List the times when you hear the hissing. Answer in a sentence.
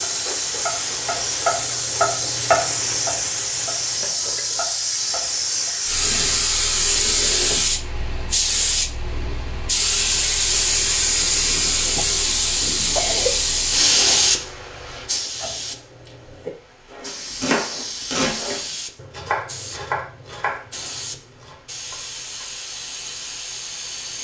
The hissing can be heard from 0.0 to 24.1 s.